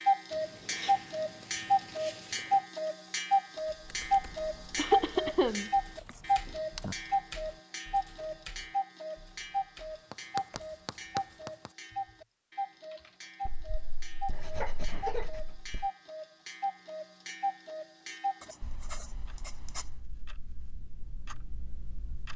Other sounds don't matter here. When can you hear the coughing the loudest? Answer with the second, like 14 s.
5 s.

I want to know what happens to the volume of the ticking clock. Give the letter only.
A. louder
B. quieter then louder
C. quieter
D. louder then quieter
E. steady
C.